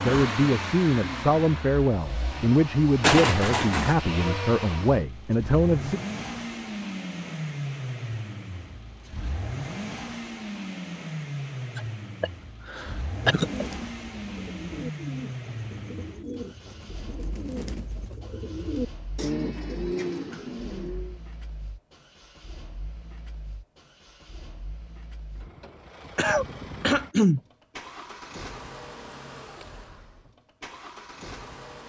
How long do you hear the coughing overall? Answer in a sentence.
You can hear the coughing for 4 seconds altogether.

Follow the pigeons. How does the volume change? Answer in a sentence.
The volume of the pigeons goes up.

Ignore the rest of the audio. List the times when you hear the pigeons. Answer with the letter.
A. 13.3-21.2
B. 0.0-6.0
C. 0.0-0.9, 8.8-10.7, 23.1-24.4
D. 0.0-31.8
A.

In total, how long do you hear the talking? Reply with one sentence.
You can hear the talking for 6 seconds altogether.